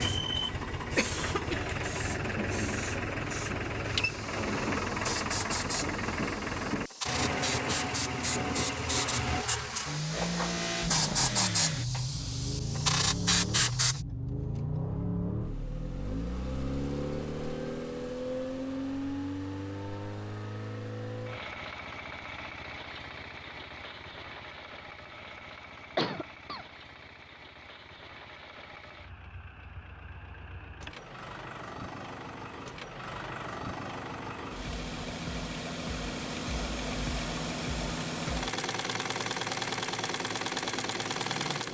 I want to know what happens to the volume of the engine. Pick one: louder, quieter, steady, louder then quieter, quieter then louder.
quieter then louder.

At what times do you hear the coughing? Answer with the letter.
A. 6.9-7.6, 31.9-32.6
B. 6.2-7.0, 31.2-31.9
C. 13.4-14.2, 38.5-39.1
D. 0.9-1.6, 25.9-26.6
D.